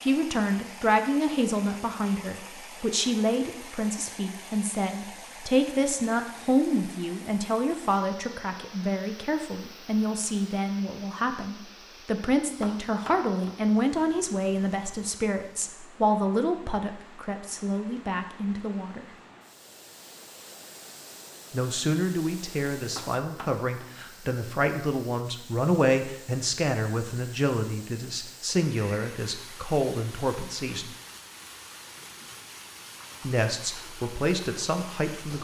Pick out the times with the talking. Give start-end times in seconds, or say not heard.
0.0-19.1, 21.5-30.9, 33.2-35.3.